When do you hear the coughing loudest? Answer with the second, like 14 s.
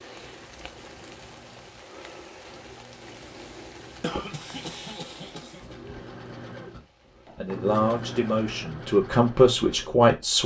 4 s.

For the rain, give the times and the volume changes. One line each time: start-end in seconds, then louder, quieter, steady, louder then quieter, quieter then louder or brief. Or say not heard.
0.0-7.6 quieter.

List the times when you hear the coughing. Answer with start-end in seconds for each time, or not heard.
4.0-5.8.